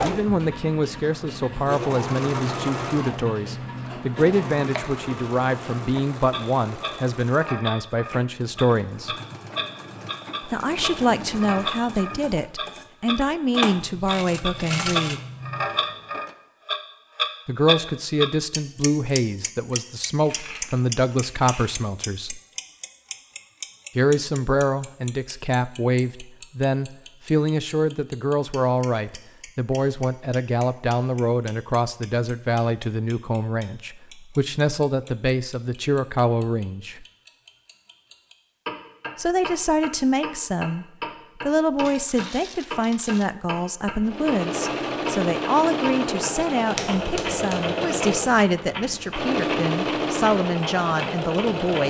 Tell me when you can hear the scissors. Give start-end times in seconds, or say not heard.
46.8-47.8.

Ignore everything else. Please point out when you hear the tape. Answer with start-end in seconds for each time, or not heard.
not heard.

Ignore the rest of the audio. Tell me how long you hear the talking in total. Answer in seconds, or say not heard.
44 s.